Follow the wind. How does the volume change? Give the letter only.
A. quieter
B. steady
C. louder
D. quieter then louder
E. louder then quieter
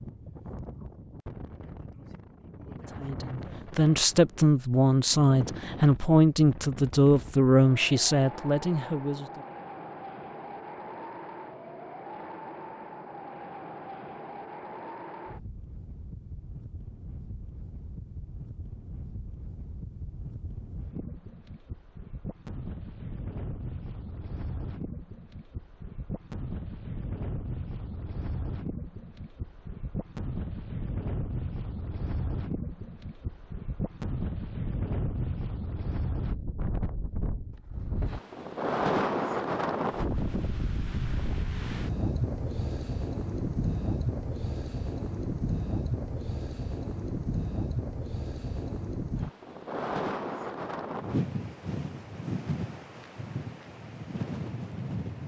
C.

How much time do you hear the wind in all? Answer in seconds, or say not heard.
55 s.